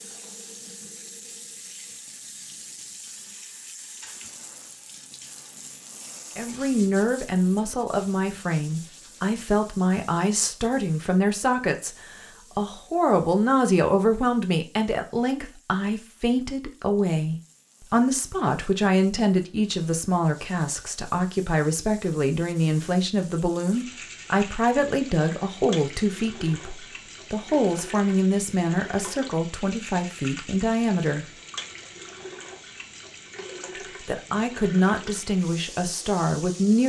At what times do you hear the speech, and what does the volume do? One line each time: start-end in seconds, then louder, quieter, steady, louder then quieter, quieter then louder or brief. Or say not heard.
6.3-31.2 steady
34.0-36.8 brief.